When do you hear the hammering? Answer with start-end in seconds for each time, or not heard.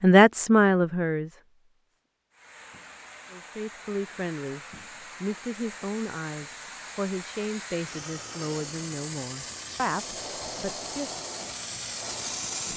not heard.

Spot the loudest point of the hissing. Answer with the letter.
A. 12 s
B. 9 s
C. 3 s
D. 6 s
A.